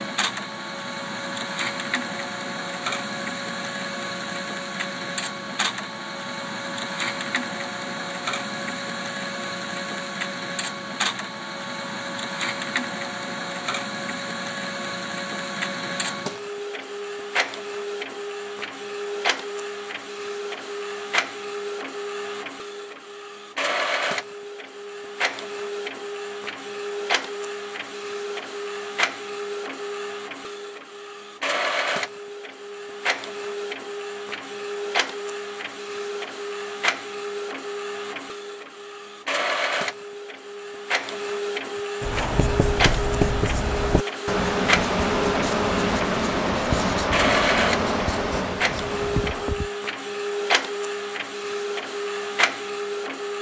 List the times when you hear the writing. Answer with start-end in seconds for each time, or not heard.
42.0-49.7.